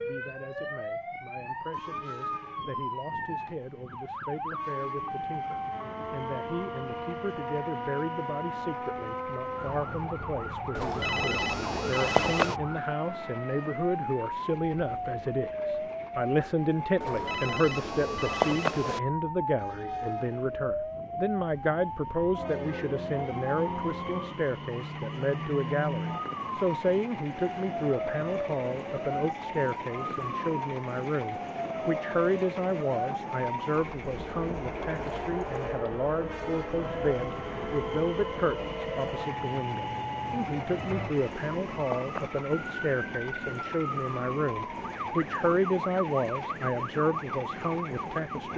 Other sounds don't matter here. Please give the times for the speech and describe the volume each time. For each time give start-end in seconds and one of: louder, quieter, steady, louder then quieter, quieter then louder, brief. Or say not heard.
0.0-48.5 louder.